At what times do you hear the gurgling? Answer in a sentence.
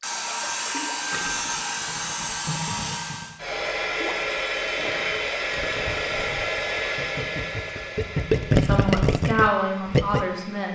The gurgling can be heard from 0.2 to 10.2 s.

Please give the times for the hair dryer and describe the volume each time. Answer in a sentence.
You can hear the hair dryer from 0.0 to 10.7 s, getting quieter.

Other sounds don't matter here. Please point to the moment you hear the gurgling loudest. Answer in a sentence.
The volume of the gurgling peaks at 8 seconds.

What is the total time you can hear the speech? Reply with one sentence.
The speech can be heard for 2 seconds in total.